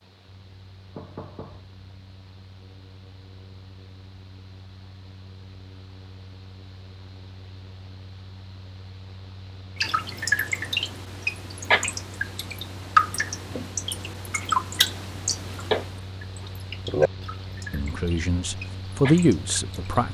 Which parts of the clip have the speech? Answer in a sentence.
You can hear the speech from 17.7 to 20.1 s.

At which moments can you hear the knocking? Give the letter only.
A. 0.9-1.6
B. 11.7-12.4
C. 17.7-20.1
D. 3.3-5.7
A.